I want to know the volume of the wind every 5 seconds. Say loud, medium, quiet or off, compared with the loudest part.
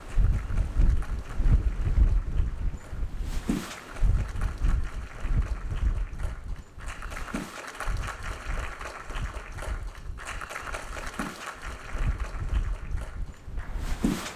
loud, medium, loud.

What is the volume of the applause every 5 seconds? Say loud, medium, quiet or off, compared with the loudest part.
medium, loud, loud.